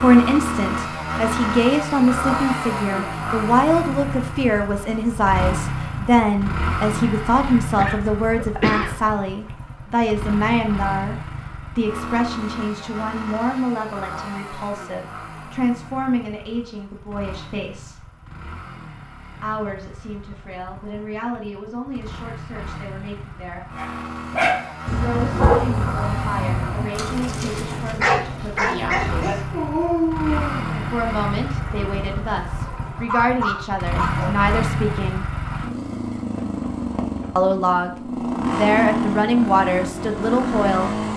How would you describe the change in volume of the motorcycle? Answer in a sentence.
The loudness of the motorcycle goes down, then up.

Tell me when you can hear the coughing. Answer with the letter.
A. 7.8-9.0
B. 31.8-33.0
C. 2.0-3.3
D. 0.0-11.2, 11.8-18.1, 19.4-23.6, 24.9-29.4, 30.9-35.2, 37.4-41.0
A.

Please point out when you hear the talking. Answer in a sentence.
The talking can be heard from 0.0 to 11.2 s, from 11.8 to 18.1 s, from 19.4 to 23.6 s, from 24.9 to 29.4 s, from 30.9 to 35.2 s and from 37.4 to 41.0 s.